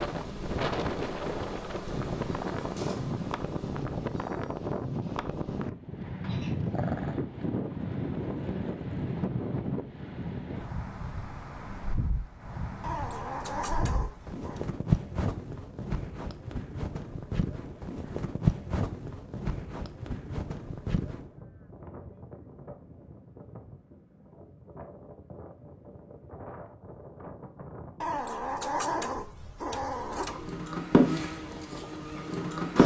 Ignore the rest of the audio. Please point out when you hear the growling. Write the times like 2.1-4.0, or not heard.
6.2-7.2, 12.8-14.7, 28.0-30.4.